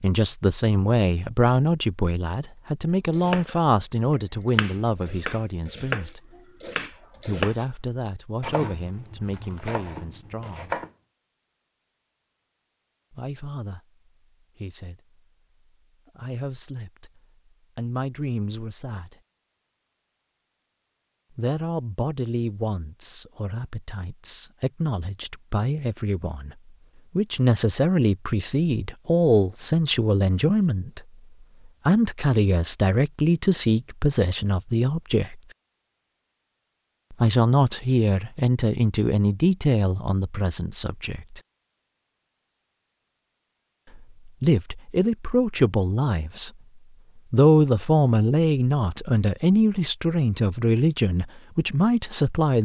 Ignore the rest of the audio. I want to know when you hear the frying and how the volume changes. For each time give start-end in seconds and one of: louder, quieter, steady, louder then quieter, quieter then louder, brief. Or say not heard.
not heard.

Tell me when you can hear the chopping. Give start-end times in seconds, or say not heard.
3.1-7.7, 8.4-10.9.